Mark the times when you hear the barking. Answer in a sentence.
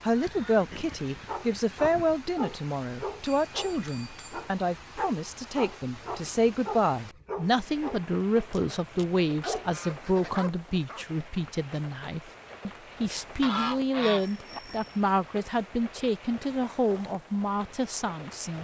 You can hear the barking from 1.2 to 11.1 s.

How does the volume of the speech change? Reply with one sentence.
The volume of the speech stays about the same.